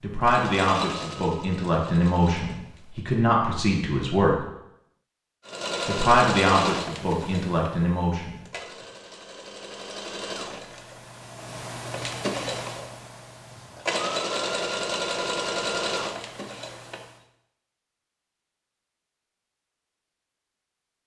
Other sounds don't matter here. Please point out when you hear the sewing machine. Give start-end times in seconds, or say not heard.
0.1-3.1, 5.5-17.1.